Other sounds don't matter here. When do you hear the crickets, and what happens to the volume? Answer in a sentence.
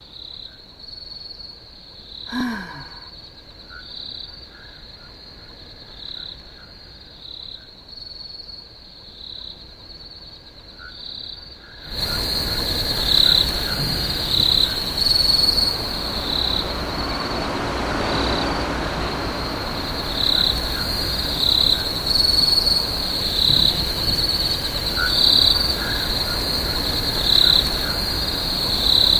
You can hear the crickets from 0.0 to 29.1 s, getting louder.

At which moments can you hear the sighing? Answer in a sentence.
The sighing can be heard from 2.2 to 3.1 s.